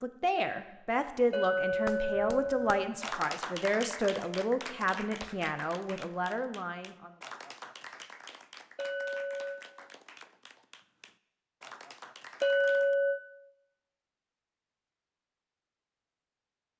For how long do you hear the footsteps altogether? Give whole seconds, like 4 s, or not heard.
not heard.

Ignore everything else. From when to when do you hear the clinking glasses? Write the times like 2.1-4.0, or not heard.
1.3-2.9, 8.8-9.6, 12.4-13.2.